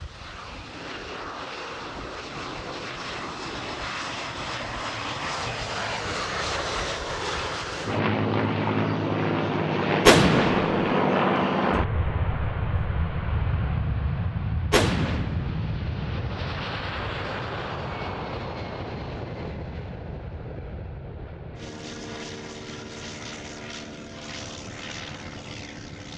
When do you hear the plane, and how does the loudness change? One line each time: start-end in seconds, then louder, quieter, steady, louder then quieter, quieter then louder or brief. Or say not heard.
0.0-26.1 louder then quieter.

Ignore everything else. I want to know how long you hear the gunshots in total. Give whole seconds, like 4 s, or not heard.
2 s.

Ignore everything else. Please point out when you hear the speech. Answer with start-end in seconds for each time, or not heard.
not heard.